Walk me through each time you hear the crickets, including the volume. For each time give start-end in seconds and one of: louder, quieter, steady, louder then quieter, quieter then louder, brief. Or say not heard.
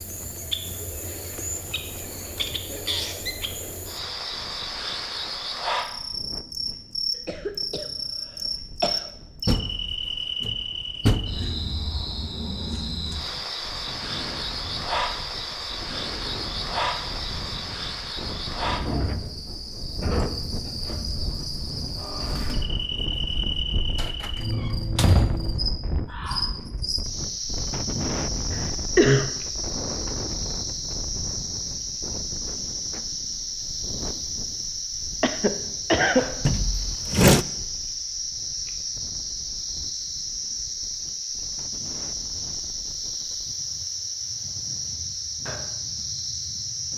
0.0-46.9 steady.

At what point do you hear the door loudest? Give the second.
37 s.